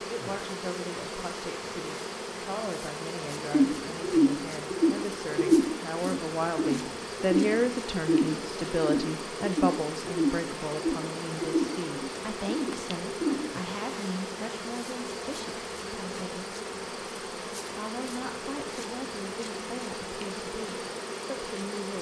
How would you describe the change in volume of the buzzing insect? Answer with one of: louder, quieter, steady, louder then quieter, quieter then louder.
steady.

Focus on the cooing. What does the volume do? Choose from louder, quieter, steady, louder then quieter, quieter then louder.
quieter.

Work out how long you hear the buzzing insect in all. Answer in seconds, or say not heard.
22 s.